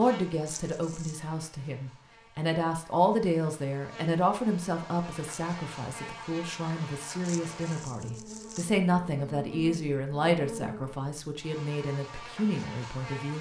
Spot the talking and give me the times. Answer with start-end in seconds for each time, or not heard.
0.0-13.3.